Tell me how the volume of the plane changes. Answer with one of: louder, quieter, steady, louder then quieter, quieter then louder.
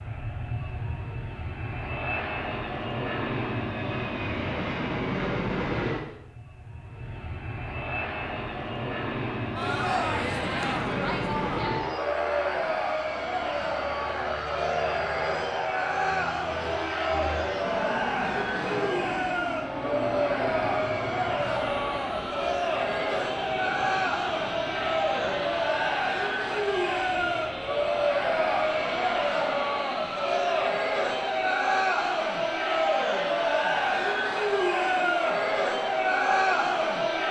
quieter.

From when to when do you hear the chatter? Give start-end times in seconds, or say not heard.
9.6-37.2.